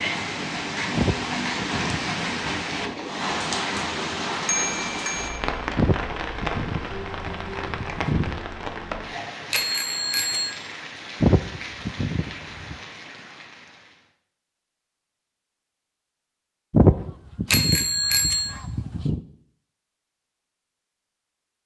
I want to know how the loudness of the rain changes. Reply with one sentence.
The loudness of the rain goes down.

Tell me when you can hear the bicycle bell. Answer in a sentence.
You can hear the bicycle bell from 4.5 to 5.4 s, from 9.5 to 10.5 s and from 17.5 to 18.5 s.